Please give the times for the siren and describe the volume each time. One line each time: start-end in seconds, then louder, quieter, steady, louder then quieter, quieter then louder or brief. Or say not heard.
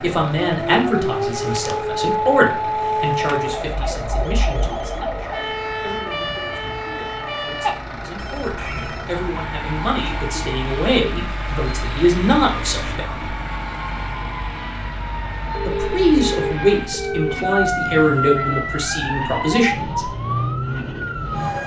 0.0-21.6 quieter then louder.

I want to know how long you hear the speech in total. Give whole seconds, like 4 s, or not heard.
18 s.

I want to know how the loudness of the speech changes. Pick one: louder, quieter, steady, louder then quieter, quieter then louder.
quieter then louder.